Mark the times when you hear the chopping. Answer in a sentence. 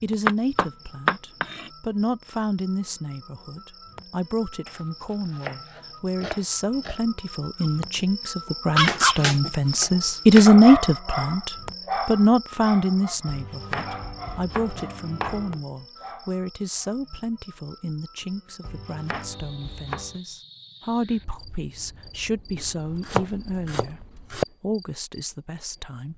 The chopping can be heard from 0.2 to 1.7 s, from 4.7 to 7.0 s, from 8.8 to 10.5 s, from 13.2 to 15.6 s, from 18.6 to 20.2 s and from 22.6 to 24.4 s.